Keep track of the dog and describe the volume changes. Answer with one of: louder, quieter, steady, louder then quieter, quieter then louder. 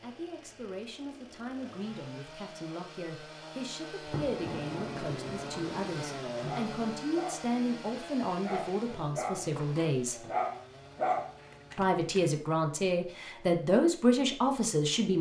louder.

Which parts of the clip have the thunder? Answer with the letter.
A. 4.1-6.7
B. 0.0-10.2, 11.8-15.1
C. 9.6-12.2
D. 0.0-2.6
A.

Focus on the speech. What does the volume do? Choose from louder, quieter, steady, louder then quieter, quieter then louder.
louder.